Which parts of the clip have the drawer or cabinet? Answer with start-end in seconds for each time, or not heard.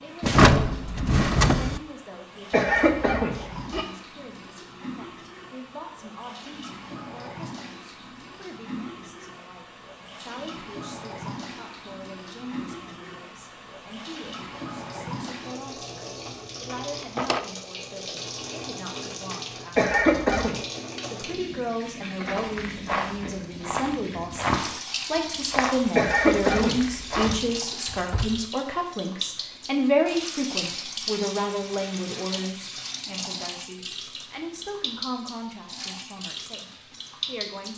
0.2-1.8, 16.9-17.4, 27.1-28.4.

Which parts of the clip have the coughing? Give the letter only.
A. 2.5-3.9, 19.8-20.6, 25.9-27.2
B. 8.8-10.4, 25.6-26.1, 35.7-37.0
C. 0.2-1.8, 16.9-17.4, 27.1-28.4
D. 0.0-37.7
A.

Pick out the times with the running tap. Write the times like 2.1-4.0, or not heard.
0.0-37.7.